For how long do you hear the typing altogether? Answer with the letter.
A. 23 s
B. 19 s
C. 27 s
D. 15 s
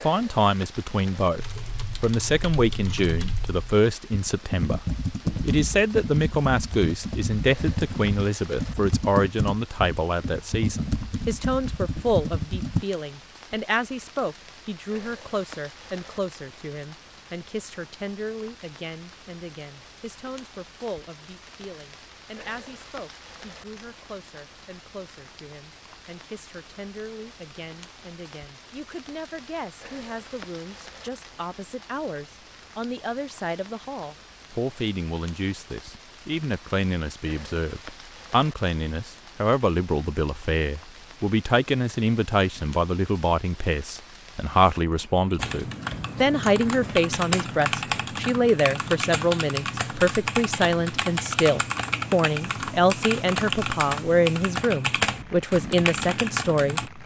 A.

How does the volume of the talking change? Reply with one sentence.
The volume of the talking goes down, then up.